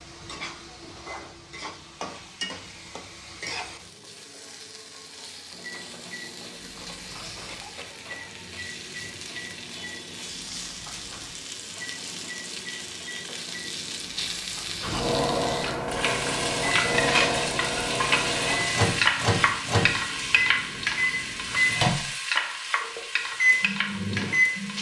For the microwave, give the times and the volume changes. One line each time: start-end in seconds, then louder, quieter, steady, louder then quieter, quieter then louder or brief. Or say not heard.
5.5-24.7 louder.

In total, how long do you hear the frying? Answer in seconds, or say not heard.
25 s.